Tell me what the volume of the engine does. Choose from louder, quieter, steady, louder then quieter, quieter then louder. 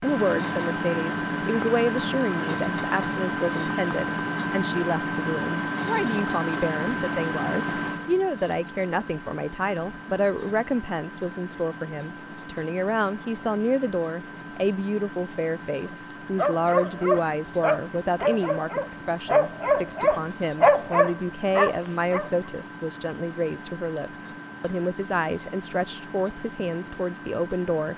quieter.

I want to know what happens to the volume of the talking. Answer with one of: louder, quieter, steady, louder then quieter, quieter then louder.
steady.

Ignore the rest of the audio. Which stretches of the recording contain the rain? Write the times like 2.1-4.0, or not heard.
not heard.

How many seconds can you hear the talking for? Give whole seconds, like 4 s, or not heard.
28 s.